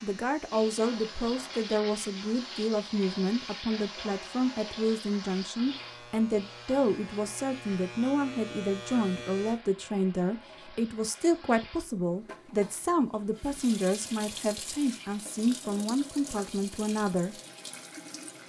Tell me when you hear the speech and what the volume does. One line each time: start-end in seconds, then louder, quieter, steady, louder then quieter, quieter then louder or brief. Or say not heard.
0.0-17.4 steady.